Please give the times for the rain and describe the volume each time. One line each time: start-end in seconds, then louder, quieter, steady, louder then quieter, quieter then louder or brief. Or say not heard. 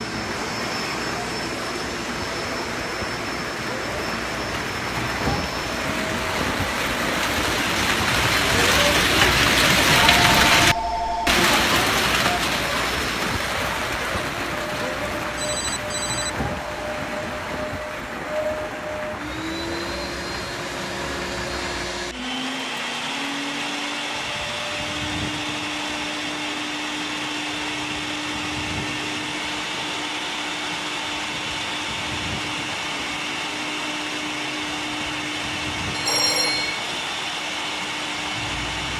0.1-38.9 louder then quieter.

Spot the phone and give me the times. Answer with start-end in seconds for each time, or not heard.
9.9-11.4, 15.3-16.3, 35.9-36.9.